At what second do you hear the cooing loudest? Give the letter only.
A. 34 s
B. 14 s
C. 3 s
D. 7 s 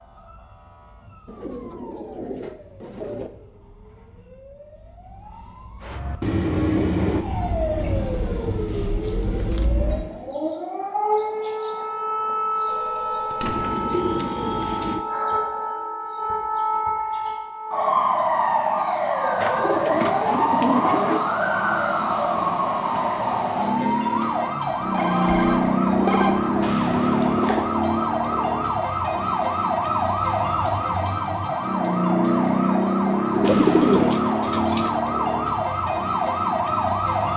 A.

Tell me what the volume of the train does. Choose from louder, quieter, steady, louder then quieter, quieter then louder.
quieter.